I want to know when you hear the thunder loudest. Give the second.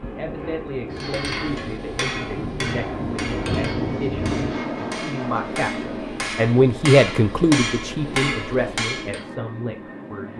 4 s.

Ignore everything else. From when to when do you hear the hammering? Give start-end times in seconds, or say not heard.
0.9-9.2.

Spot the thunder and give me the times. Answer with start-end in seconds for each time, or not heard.
0.0-4.6.